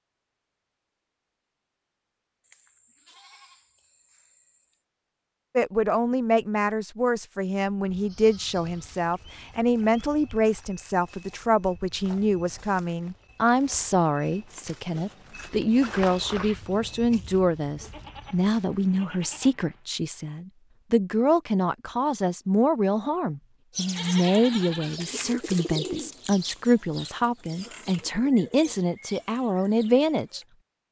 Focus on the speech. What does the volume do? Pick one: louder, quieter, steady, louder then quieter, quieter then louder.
steady.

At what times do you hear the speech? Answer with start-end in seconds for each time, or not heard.
5.5-30.4.